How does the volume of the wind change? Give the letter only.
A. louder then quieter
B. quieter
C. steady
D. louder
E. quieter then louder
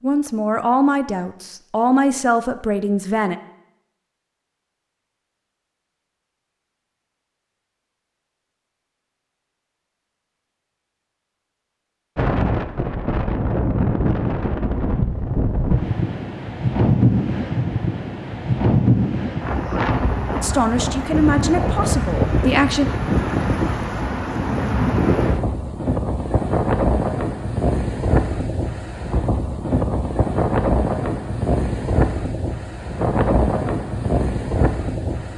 C.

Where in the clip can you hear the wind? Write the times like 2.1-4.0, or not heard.
12.2-35.3.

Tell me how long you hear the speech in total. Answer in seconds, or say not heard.
6 s.